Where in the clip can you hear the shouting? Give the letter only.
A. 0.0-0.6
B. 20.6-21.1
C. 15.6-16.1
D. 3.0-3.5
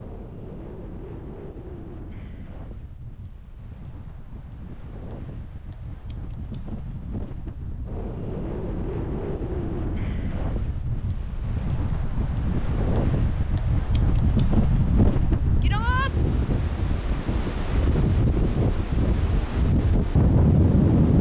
C.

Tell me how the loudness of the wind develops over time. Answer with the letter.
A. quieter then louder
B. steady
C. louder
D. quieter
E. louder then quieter
C.